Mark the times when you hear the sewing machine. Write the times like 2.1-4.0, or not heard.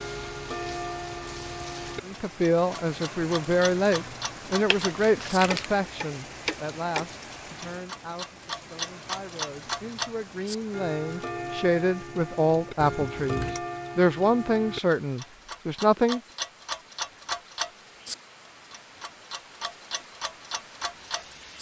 not heard.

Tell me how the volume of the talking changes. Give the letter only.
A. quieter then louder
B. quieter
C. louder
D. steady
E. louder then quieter
A.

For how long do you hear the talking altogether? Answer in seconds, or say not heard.
14 s.